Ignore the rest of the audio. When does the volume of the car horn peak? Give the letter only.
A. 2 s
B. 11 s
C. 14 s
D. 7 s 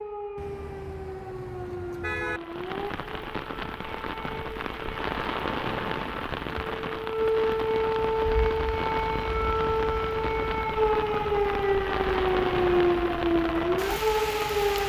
A.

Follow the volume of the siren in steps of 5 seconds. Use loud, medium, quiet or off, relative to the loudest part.
quiet, loud, loud.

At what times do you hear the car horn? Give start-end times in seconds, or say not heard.
0.3-2.4.